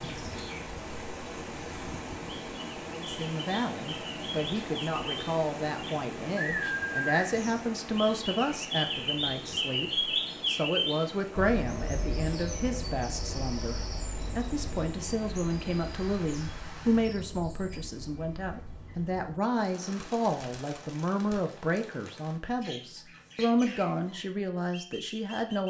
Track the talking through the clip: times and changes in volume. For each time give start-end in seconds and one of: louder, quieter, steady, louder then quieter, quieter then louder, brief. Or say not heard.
2.9-25.6 steady.